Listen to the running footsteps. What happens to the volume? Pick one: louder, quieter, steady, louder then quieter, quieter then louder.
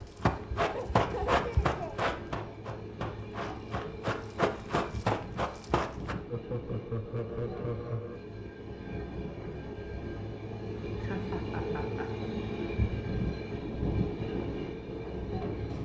quieter then louder.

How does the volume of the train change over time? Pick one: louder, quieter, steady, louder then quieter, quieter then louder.
louder.